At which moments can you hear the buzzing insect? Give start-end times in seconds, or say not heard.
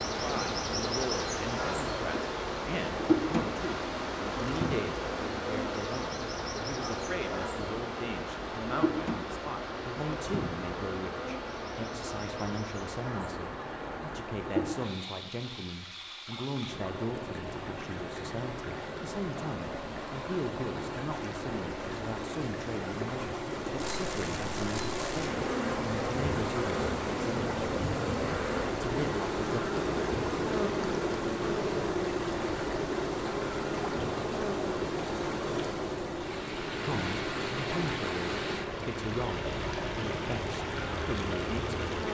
0.0-14.7, 23.8-42.0.